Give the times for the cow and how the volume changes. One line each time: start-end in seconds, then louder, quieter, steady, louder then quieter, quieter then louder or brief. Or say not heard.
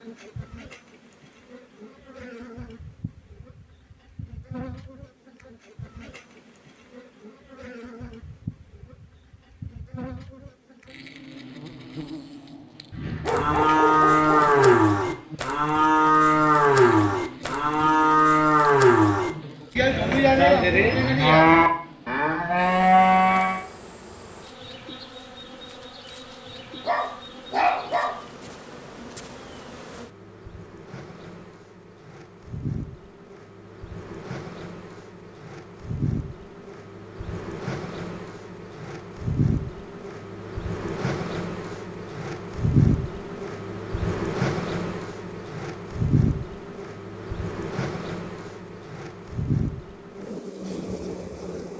13.2-23.6 steady.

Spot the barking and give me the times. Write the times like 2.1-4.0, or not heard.
12.9-14.6, 26.8-28.2.